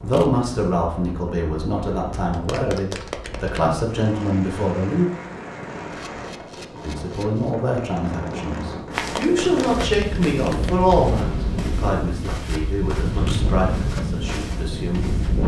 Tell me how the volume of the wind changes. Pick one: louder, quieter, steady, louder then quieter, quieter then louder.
louder.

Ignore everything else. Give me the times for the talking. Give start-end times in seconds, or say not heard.
0.0-5.0, 6.8-15.1.